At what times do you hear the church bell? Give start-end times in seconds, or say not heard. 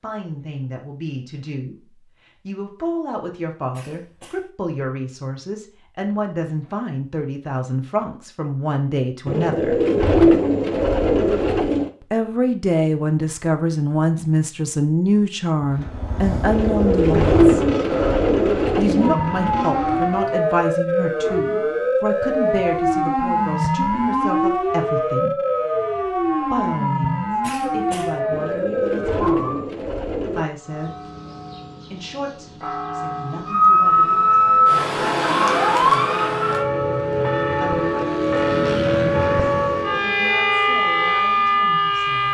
30.6-41.4.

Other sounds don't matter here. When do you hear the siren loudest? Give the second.
34 s.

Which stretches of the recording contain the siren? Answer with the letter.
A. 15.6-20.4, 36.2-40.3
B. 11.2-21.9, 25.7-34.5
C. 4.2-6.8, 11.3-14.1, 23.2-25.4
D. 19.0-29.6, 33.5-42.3
D.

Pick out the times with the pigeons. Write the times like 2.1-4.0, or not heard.
9.2-11.9, 16.4-19.1, 28.3-30.4.